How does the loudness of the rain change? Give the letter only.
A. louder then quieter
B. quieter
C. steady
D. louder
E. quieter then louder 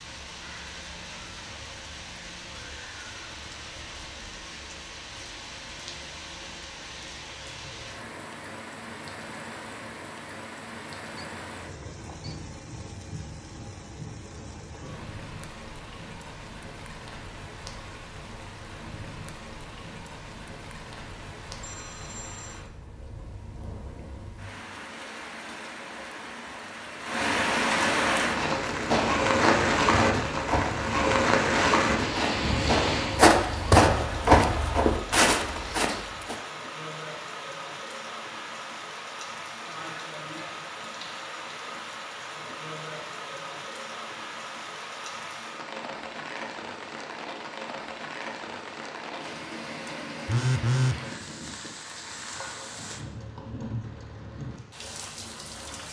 A.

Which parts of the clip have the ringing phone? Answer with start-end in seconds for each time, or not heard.
11.2-12.4, 21.6-22.6, 50.2-51.0.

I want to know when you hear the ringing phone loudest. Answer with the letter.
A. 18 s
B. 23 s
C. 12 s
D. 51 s
D.